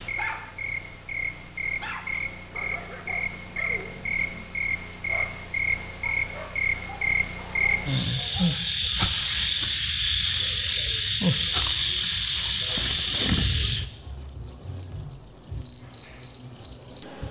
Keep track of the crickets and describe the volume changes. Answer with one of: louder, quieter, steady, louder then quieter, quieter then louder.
louder.